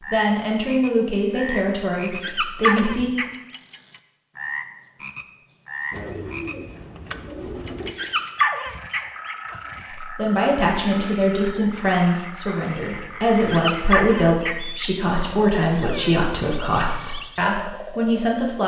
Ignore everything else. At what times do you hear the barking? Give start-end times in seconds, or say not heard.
2.1-3.2, 7.8-9.8, 13.3-15.3.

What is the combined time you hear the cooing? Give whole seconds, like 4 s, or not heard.
2 s.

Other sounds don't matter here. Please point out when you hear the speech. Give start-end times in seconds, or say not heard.
0.1-3.1, 9.9-18.6.